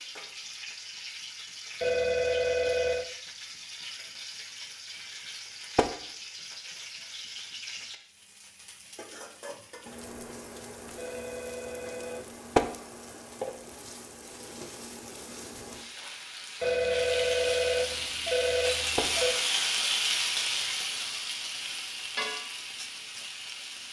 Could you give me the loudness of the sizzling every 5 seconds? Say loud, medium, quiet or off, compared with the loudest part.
medium, medium, medium, loud, loud.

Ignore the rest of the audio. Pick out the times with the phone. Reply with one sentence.
The phone can be heard from 1.8 to 3.0 s, from 10.9 to 12.4 s and from 16.6 to 19.4 s.